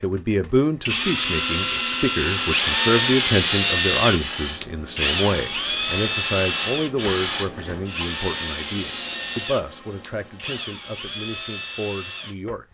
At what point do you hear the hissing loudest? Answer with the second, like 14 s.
7 s.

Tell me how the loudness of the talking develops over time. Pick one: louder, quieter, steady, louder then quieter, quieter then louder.
quieter.